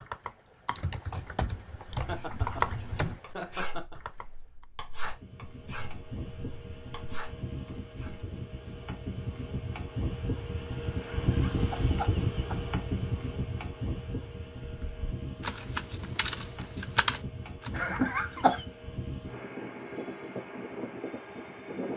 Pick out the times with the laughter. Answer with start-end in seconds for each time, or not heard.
2.0-4.0, 11.0-12.8, 17.8-18.6.